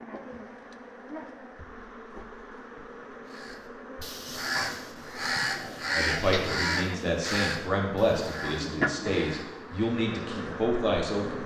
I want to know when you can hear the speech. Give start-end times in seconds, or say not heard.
6.0-11.4.